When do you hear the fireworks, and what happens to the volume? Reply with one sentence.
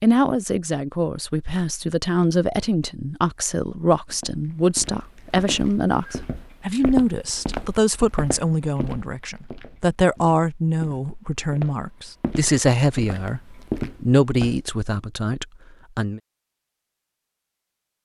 You can't hear the fireworks here.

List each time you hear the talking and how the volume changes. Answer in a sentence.
You can hear the talking from 0.0 to 16.2 s, at a steady volume.